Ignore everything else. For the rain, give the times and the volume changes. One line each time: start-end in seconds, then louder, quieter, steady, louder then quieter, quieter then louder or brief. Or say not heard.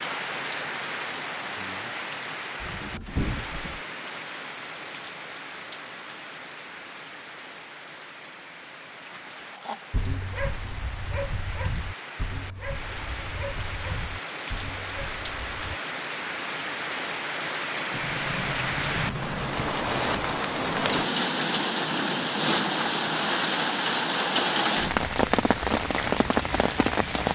0.0-27.3 quieter then louder.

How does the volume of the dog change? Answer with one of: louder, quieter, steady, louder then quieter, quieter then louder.
quieter.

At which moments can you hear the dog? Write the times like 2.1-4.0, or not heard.
9.1-15.8.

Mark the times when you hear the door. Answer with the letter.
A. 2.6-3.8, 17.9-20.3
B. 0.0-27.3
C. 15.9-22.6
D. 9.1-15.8
A.